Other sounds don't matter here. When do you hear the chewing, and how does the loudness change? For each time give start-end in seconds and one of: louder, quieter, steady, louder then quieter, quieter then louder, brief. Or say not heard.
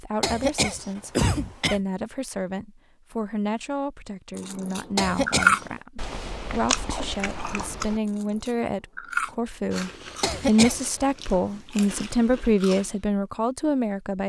4.3-13.1 quieter.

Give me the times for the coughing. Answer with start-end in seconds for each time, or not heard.
0.2-1.8, 5.0-5.8, 10.2-10.9.